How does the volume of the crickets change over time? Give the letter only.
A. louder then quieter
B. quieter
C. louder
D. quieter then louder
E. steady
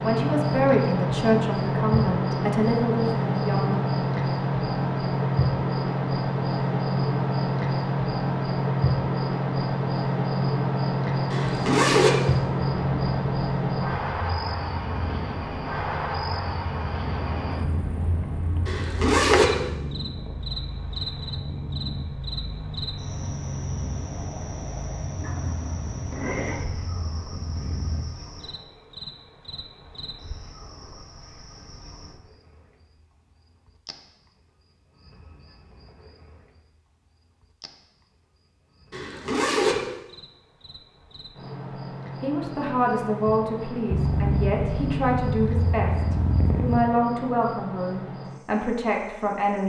D.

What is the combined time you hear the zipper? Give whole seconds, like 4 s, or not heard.
3 s.